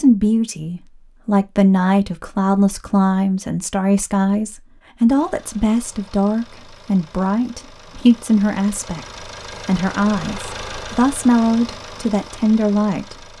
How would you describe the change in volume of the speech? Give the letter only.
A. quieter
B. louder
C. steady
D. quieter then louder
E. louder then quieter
C.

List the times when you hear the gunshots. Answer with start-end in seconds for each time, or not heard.
not heard.